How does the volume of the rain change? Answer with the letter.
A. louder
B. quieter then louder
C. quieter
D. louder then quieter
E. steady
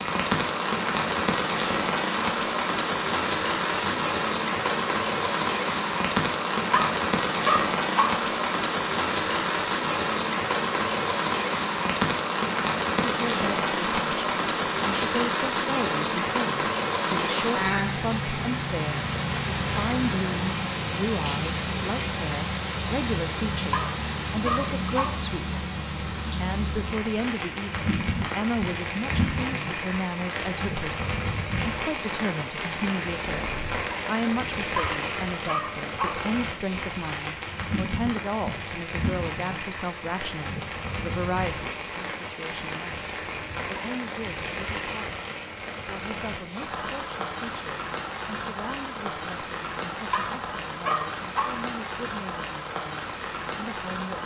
C.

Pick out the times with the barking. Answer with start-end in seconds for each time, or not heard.
6.7-8.2, 23.7-25.2, 34.8-36.2, 50.1-51.6.